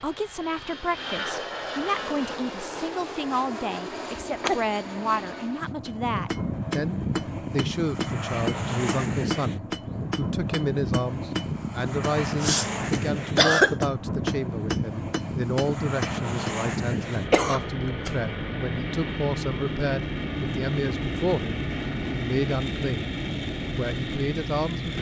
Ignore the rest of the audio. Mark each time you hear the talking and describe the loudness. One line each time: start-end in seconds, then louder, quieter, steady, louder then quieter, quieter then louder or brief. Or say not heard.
0.0-23.1 steady
23.8-24.9 brief.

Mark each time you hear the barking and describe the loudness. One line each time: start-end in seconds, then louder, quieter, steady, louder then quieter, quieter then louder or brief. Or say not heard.
not heard.